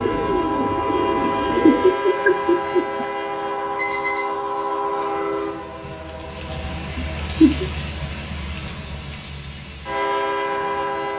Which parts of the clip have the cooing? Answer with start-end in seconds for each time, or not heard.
0.0-2.0.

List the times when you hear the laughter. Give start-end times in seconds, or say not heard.
1.2-3.0, 7.0-7.7.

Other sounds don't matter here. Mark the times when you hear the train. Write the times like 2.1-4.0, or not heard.
0.0-11.1.